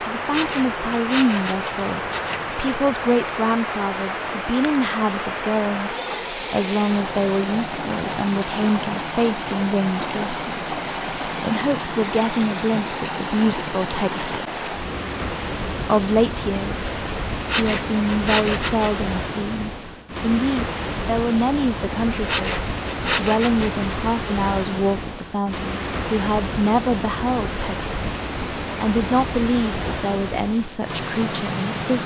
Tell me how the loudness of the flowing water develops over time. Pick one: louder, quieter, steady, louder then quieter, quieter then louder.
steady.